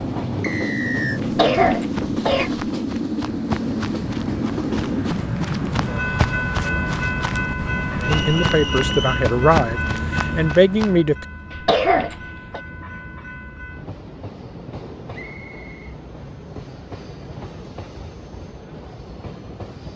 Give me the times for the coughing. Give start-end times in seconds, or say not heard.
1.2-2.7, 11.5-12.6.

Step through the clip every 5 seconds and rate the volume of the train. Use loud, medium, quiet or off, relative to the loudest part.
loud, loud, medium, quiet.